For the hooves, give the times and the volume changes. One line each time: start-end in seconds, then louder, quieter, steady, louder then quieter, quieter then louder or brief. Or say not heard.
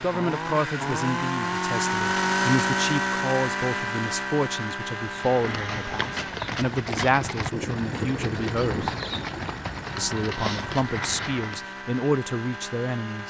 5.2-11.7 steady.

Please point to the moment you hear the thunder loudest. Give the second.
8 s.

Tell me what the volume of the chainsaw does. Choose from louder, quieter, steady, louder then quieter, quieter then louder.
quieter.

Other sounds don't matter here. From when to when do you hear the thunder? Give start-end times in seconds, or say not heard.
7.5-9.4.